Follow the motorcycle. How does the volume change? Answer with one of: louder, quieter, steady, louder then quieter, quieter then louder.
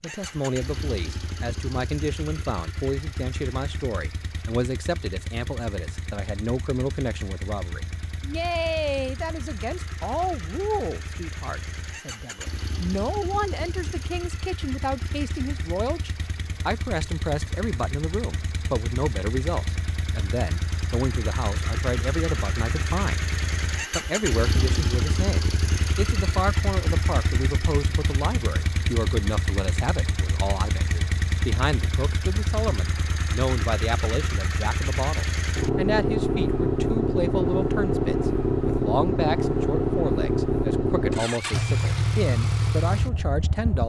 louder.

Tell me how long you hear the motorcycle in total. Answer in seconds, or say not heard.
44 s.